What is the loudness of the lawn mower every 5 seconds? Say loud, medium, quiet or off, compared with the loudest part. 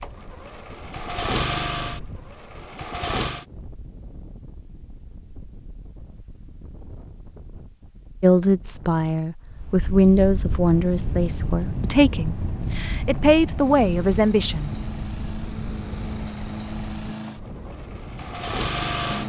loud, off, medium, loud.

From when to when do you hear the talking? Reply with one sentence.
The talking can be heard from 8.2 to 14.7 s.